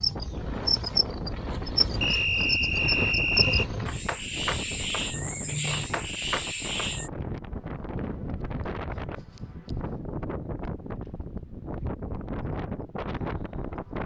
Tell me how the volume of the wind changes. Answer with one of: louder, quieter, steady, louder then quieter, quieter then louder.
steady.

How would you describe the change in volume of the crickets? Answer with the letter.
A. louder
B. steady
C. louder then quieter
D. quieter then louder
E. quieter
B.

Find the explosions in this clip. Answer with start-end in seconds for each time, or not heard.
not heard.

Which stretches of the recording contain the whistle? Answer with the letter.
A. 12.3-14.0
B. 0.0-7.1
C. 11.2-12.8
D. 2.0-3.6
D.